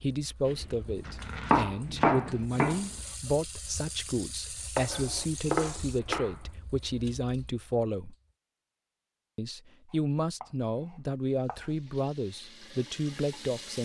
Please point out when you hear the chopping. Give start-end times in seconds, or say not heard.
0.5-3.0, 4.8-6.5, 9.9-11.8.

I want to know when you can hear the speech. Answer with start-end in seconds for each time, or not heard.
0.0-8.2, 9.3-13.8.